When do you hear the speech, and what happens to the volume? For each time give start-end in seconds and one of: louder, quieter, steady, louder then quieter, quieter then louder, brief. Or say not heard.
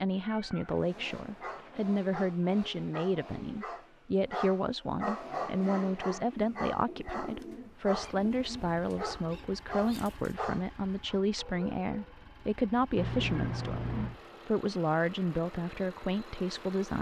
0.0-16.9 steady.